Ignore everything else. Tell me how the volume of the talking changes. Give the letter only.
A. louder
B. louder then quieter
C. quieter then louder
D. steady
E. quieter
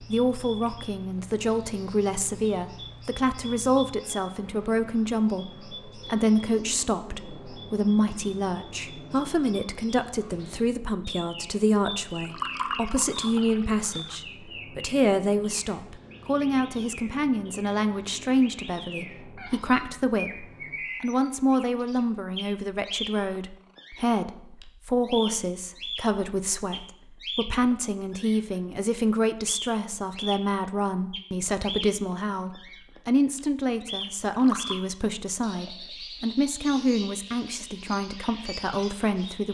D.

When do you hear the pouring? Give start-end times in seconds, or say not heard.
12.1-14.2, 34.2-34.8.